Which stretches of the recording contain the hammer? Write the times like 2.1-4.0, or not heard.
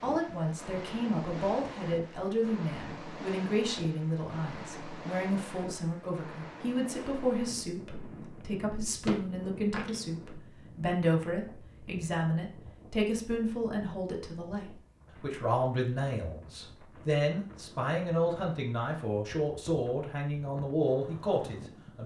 8.8-10.0.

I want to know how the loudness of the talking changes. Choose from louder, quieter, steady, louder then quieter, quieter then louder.
steady.